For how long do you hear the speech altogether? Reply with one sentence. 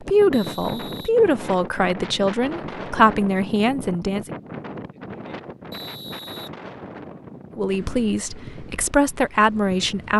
The speech can be heard for 7 seconds in total.